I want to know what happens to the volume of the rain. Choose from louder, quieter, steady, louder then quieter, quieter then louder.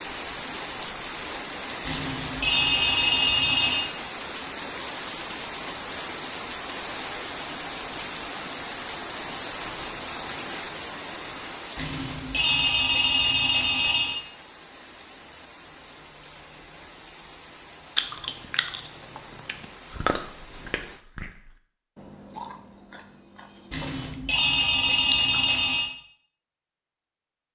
quieter.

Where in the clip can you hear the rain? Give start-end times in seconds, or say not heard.
0.0-21.1.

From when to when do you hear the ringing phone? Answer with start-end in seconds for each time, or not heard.
1.9-3.9, 11.8-14.2, 23.7-25.9.